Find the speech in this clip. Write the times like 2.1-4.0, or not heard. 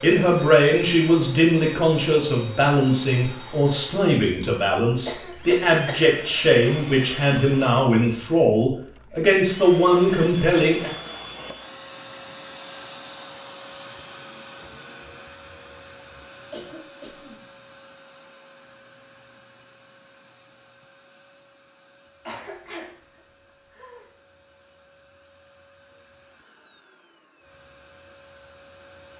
0.0-10.9.